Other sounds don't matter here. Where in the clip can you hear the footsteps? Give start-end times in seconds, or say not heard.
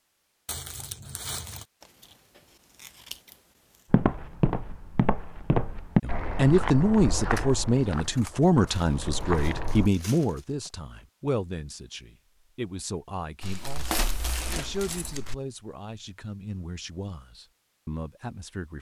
3.9-9.9.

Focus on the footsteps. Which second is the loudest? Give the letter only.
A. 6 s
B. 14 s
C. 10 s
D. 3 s
A.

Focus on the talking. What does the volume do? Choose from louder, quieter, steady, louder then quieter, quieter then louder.
quieter.